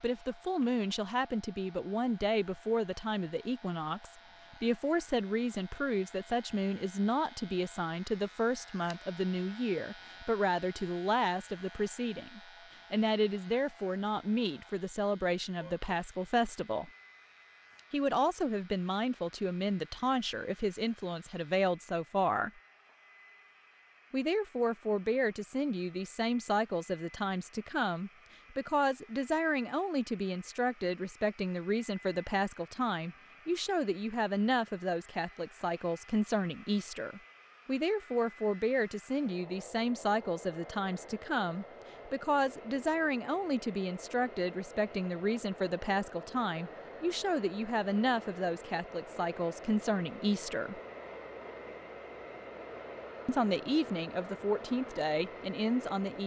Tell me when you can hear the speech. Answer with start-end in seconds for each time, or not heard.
0.0-16.9, 17.9-22.6, 24.1-50.8, 53.2-56.2.